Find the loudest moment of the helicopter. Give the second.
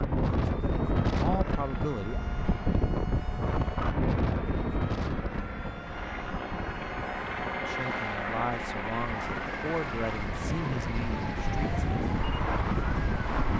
8 s.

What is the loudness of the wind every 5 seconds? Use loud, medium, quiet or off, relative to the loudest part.
loud, medium, loud.